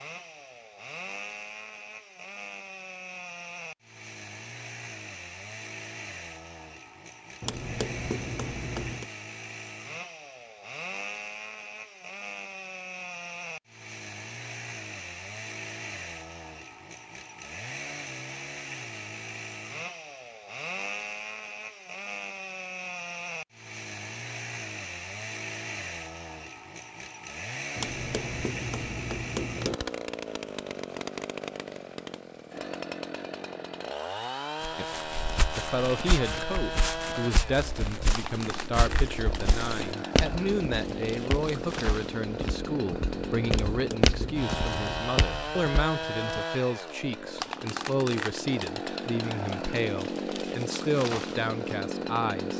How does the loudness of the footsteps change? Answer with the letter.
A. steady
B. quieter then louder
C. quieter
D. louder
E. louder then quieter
D.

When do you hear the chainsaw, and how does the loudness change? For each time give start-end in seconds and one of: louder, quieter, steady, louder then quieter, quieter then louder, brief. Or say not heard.
0.0-52.5 louder.